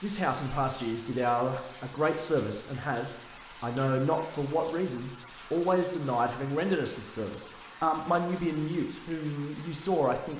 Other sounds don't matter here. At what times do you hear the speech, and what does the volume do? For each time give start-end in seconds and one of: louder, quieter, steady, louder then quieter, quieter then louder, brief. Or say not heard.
0.0-10.3 steady.